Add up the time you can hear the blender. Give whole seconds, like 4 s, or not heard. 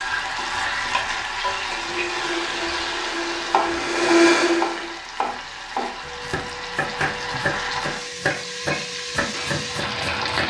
3 s.